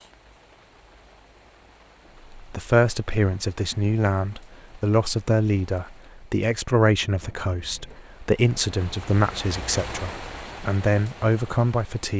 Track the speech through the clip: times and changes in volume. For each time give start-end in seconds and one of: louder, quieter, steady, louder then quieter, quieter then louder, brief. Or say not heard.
2.4-12.1 steady.